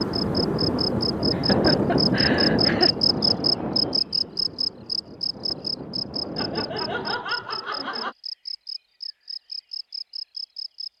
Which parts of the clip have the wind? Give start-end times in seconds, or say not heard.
0.0-7.2.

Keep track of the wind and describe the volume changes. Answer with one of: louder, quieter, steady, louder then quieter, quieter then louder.
quieter then louder.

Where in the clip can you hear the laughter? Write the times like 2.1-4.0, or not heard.
1.3-2.9, 6.3-8.2.